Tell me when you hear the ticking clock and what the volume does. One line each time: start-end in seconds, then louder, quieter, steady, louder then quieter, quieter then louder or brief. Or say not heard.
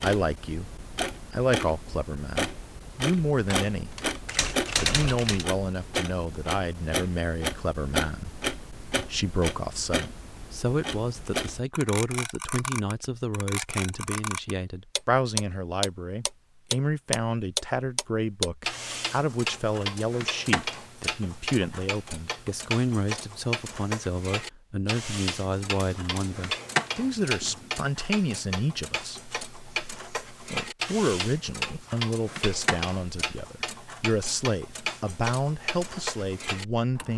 0.0-37.1 steady.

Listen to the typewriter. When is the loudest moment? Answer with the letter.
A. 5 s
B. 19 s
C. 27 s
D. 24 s
A.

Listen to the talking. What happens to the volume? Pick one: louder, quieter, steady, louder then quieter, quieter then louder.
steady.